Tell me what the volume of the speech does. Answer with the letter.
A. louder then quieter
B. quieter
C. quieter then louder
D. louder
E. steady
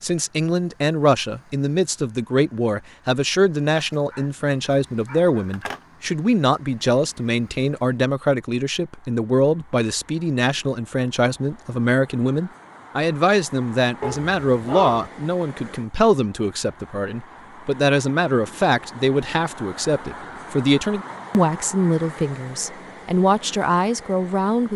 E.